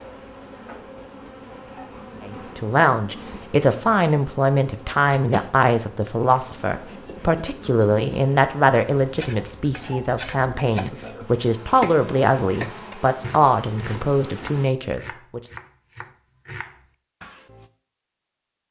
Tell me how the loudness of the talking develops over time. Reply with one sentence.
The volume of the talking stays about the same.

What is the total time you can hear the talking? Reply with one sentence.
The talking can be heard for 13 seconds in total.